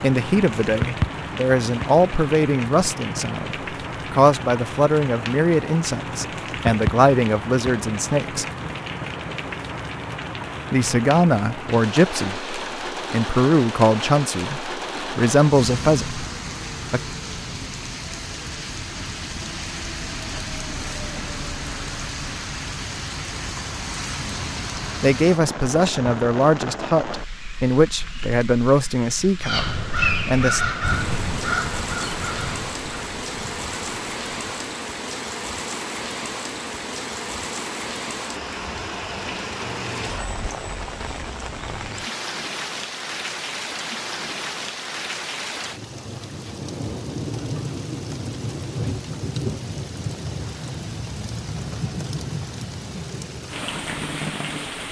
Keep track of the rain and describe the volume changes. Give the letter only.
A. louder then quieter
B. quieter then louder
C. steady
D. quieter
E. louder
C.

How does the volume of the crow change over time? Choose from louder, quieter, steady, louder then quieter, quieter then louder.
quieter.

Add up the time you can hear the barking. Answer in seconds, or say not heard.
not heard.